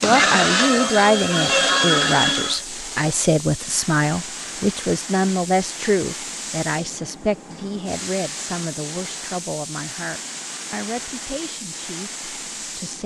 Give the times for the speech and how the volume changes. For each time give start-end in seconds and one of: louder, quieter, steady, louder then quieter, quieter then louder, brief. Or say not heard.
0.0-13.0 quieter.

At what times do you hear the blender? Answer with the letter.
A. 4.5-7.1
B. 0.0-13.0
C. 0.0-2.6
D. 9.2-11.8
C.